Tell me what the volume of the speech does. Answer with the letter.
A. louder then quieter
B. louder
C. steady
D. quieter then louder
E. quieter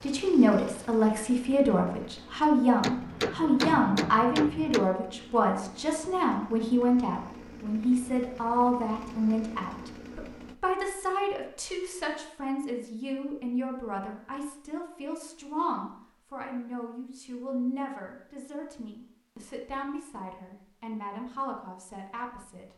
E.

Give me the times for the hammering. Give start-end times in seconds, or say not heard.
2.8-4.8.